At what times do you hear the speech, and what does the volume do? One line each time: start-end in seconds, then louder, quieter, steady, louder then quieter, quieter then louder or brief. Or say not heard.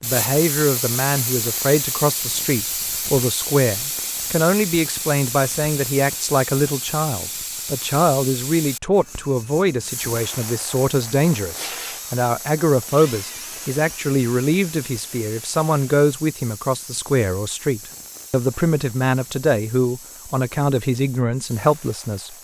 0.0-22.4 steady.